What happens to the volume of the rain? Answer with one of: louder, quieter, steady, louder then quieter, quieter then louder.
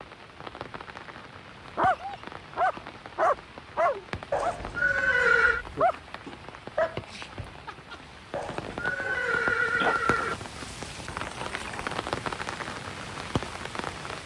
louder.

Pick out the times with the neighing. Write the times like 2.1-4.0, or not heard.
4.3-5.7, 8.3-10.3.